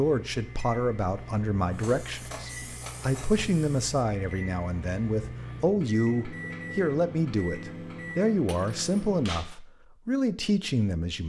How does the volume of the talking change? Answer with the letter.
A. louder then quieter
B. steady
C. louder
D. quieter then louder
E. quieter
B.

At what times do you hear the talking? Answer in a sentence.
You can hear the talking from 0.0 to 11.2 s.